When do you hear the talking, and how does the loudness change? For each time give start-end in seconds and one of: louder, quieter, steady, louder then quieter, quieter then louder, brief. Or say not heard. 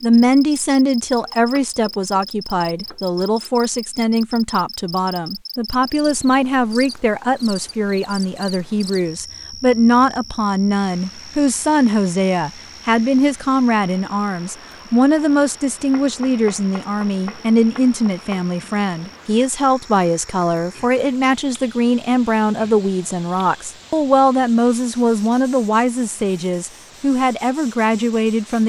0.0-28.6 steady.